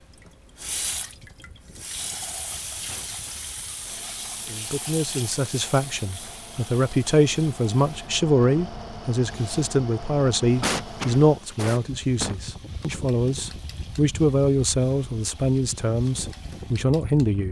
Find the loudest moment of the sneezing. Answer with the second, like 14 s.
11 s.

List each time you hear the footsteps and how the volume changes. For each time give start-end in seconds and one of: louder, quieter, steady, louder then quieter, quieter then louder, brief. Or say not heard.
not heard.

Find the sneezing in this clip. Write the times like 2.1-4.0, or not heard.
2.9-4.7, 10.6-12.4.